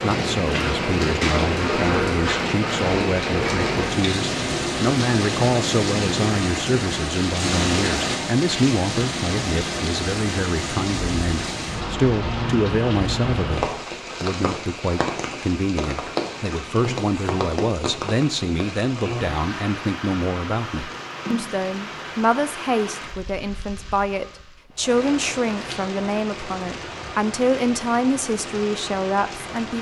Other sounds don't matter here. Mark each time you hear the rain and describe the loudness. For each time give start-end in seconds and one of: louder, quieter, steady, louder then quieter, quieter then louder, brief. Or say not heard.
0.0-29.7 quieter.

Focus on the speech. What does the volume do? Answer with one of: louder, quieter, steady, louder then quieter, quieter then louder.
steady.